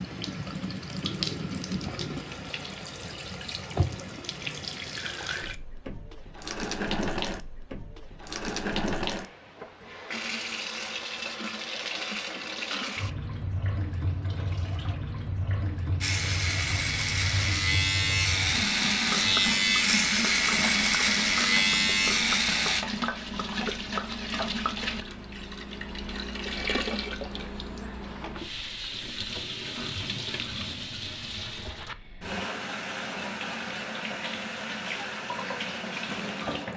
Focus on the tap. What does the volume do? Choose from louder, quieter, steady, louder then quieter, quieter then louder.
steady.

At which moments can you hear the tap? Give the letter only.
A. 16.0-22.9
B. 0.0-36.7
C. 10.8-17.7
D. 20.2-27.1
B.